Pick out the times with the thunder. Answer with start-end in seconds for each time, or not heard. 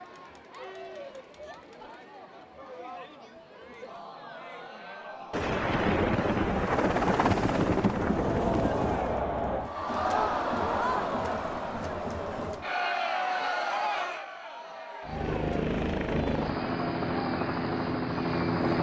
5.3-9.2.